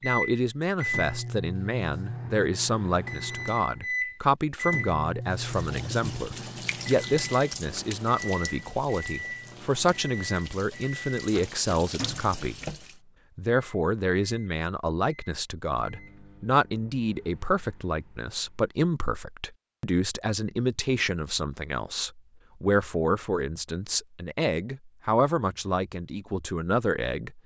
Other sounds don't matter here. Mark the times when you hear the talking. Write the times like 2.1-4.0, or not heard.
0.0-12.6, 13.3-27.4.